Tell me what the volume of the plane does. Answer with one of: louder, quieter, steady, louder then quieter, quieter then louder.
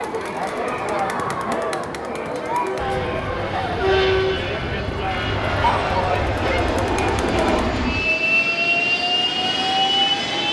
louder.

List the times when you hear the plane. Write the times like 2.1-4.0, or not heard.
2.8-10.4.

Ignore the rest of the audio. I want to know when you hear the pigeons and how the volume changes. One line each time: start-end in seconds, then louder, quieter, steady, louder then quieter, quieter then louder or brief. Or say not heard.
not heard.